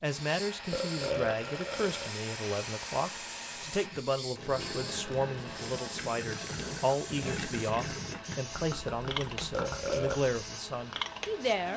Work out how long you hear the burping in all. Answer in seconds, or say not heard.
2 s.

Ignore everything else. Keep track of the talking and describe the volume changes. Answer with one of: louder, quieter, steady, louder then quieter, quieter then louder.
steady.